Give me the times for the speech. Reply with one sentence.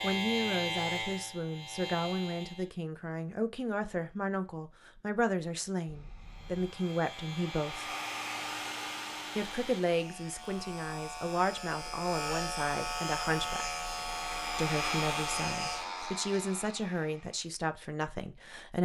You can hear the speech from 0.0 to 7.9 s, from 9.3 to 13.8 s and from 14.6 to 18.8 s.